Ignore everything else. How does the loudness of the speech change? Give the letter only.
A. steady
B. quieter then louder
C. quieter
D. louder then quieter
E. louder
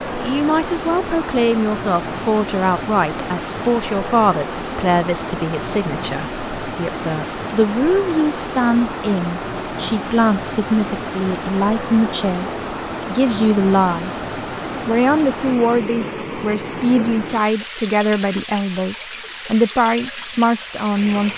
A.